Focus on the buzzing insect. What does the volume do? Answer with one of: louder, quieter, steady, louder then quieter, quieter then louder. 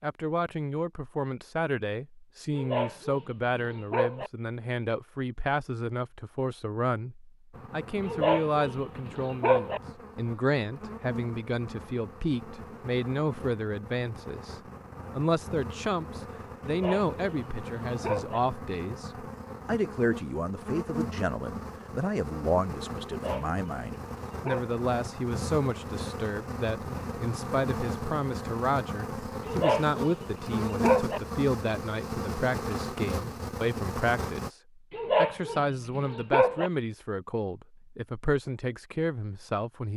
louder.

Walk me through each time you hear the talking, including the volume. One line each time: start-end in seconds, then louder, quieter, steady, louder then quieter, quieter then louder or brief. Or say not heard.
0.0-39.9 steady.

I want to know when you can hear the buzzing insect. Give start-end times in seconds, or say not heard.
7.5-34.5.